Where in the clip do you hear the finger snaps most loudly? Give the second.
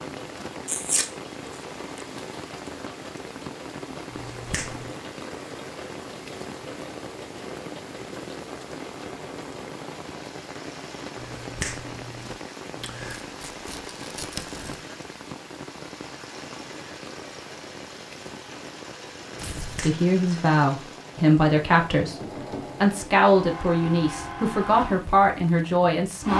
12 s.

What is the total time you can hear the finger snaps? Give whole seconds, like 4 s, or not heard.
3 s.